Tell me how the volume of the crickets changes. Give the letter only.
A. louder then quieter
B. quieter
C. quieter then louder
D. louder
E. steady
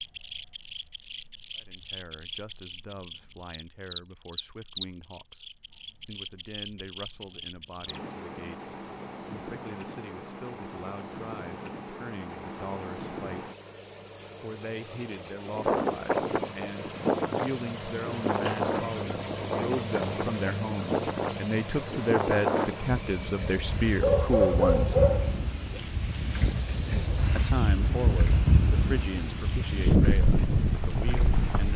A.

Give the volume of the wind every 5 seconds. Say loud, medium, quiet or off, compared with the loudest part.
off, off, off, loud, loud, loud, loud.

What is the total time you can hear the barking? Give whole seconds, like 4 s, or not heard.
2 s.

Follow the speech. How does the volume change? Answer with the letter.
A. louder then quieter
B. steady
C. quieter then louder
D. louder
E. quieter
D.